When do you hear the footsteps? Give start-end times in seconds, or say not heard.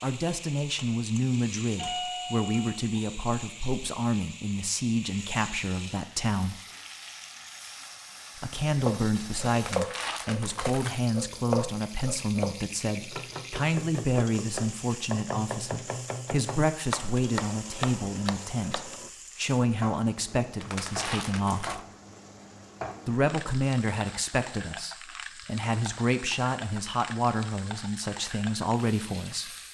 not heard.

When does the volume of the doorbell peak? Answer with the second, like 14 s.
2 s.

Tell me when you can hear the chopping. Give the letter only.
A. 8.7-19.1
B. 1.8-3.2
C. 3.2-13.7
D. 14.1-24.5
A.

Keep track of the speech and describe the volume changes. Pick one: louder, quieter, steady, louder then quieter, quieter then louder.
steady.